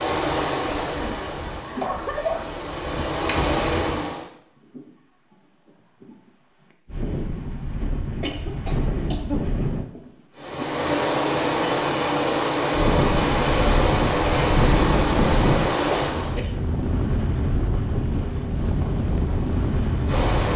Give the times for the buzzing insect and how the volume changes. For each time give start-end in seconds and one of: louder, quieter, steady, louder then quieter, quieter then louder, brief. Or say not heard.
0.0-4.3 quieter then louder
10.3-16.4 steady
17.9-20.5 brief.